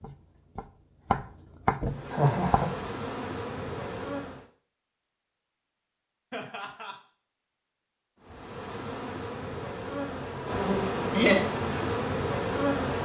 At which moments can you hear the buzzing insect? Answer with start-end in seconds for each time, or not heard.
1.9-4.5, 8.2-13.0.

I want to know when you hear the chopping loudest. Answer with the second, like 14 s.
2 s.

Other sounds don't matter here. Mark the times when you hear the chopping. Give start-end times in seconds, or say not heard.
0.0-2.8.